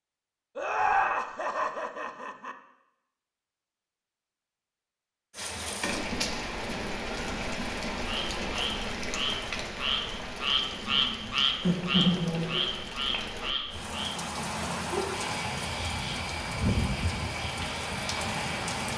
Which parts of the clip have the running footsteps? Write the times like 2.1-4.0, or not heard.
not heard.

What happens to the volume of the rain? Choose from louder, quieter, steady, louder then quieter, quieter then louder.
quieter then louder.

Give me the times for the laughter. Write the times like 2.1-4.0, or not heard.
0.6-2.5, 11.6-12.8.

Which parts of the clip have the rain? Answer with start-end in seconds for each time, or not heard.
5.3-18.9.